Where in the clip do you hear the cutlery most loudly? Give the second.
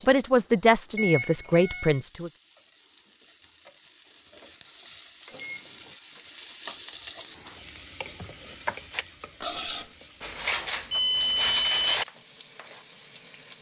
12 s.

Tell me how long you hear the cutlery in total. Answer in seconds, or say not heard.
3 s.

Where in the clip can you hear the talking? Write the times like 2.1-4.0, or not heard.
0.1-2.3.